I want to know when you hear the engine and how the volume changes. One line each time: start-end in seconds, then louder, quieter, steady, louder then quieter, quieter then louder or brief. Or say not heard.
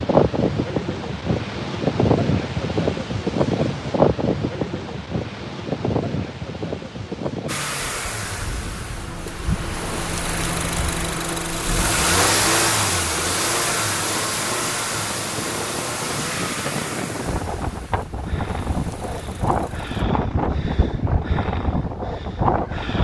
7.5-20.0 louder then quieter.